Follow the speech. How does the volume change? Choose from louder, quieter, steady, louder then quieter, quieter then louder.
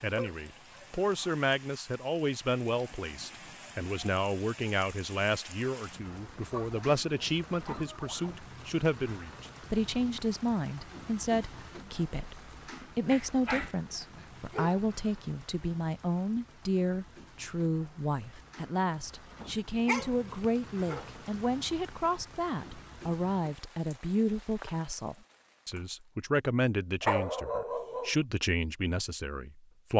steady.